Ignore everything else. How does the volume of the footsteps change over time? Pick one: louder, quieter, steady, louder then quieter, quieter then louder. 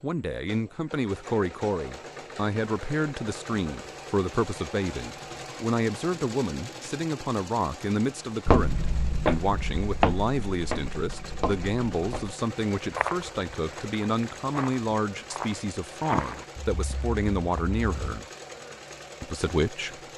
quieter.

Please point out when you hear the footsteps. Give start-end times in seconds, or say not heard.
8.4-18.2.